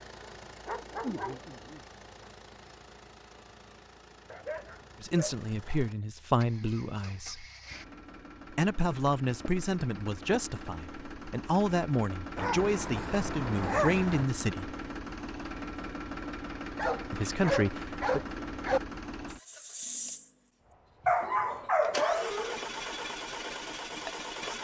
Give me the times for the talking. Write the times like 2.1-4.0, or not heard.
5.0-7.5, 8.5-14.7, 17.1-18.2.